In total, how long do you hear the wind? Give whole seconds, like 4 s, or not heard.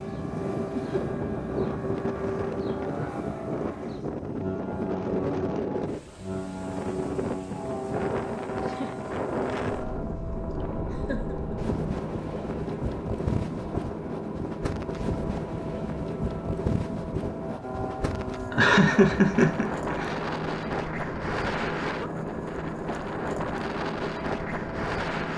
25 s.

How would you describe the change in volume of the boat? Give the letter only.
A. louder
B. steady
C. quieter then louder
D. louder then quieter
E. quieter
B.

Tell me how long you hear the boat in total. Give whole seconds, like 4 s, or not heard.
25 s.